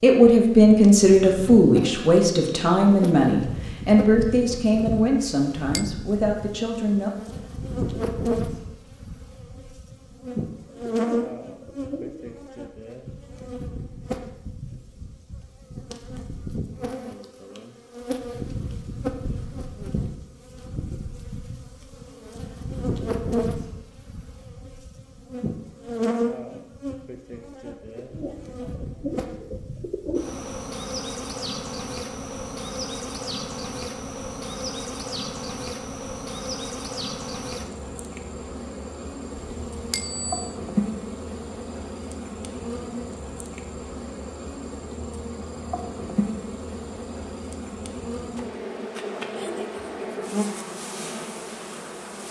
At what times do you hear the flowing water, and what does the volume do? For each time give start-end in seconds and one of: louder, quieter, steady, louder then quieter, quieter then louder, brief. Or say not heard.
not heard.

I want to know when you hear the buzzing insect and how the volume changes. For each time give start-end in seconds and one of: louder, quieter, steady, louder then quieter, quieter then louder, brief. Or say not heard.
0.2-52.2 steady.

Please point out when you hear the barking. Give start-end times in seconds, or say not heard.
not heard.